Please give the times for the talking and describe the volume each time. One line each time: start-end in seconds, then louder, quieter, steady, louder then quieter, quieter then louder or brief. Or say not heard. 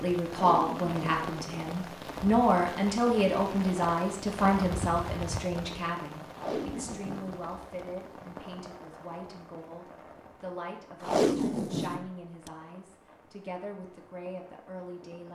0.0-15.3 quieter.